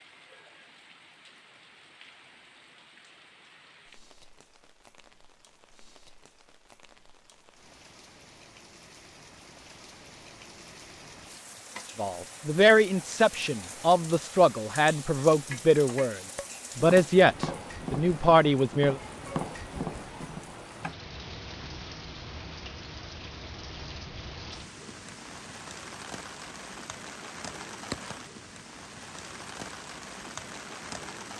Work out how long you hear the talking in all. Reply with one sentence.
You can hear the talking for 7 seconds altogether.